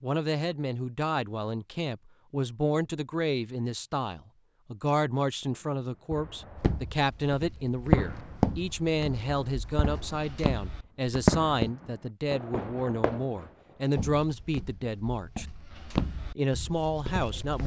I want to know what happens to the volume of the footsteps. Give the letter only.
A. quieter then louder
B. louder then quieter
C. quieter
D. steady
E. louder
B.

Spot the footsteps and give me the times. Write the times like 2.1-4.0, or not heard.
6.5-11.7, 13.9-17.6.